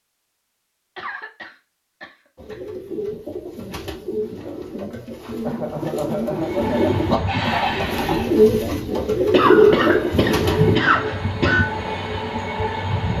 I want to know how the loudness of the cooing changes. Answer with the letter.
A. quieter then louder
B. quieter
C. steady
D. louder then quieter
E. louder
E.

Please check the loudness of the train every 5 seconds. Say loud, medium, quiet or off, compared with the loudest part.
off, loud, loud.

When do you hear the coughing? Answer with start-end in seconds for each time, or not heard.
0.9-2.6, 5.4-6.8, 9.3-11.7.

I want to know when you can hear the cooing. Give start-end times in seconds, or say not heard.
2.4-10.8.